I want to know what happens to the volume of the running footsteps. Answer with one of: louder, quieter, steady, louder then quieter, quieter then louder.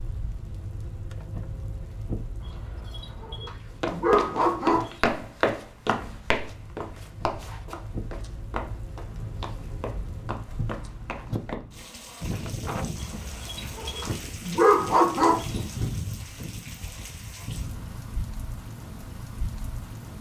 quieter.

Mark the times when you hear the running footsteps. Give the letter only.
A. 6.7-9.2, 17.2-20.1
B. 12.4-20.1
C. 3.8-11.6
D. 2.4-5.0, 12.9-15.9
C.